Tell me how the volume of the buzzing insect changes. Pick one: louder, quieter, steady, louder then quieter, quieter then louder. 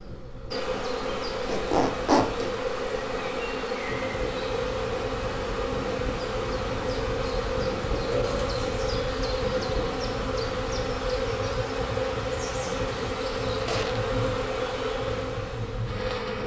steady.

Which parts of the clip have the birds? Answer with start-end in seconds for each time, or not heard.
not heard.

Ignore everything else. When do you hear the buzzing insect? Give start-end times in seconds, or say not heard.
0.0-16.4.